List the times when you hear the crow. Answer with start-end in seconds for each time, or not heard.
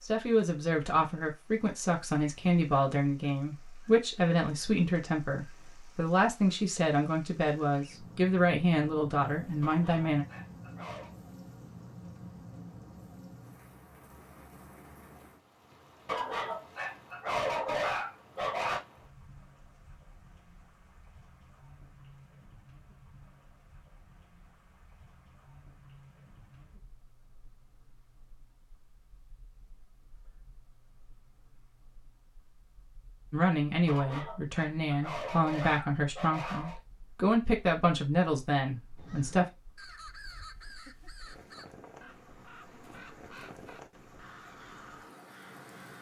39.0-45.9.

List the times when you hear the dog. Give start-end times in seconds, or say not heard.
9.6-11.1, 16.1-18.8, 33.9-36.8.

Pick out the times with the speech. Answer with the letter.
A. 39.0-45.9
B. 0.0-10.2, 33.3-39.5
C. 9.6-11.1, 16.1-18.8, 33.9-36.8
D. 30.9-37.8
B.